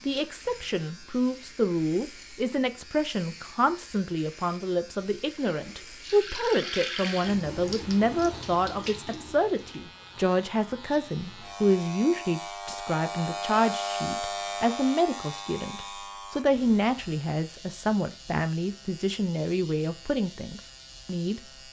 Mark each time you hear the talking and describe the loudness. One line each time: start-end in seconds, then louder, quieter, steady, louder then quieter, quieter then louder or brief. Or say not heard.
0.1-21.4 steady.